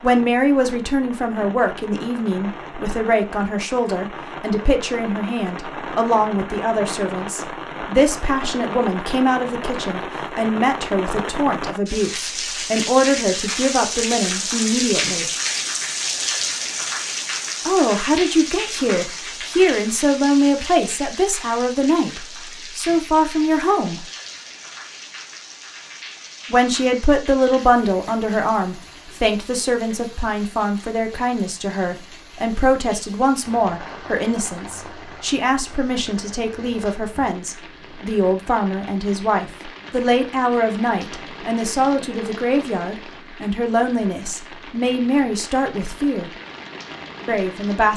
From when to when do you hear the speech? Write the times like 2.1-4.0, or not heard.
0.0-15.2, 17.6-24.1, 26.5-46.3, 47.2-47.9.